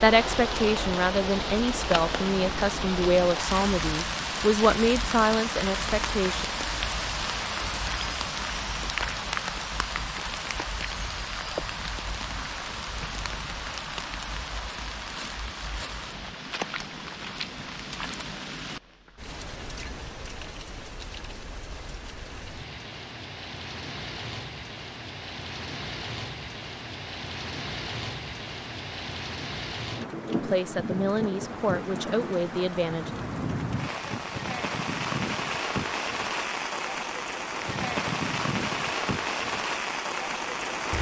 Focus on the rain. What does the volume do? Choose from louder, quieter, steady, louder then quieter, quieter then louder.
quieter then louder.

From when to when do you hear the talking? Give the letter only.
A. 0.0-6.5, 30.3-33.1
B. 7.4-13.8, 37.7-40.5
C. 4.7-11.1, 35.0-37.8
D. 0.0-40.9
A.